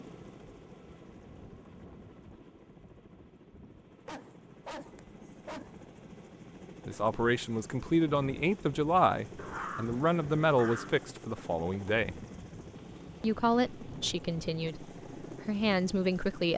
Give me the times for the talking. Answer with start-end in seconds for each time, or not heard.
6.8-12.2, 13.2-16.5.